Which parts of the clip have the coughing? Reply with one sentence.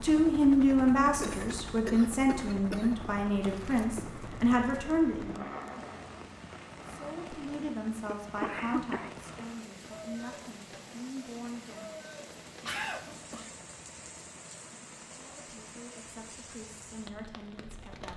You can hear the coughing from 1.2 to 3.0 s, from 8.1 to 9.7 s and from 12.6 to 13.6 s.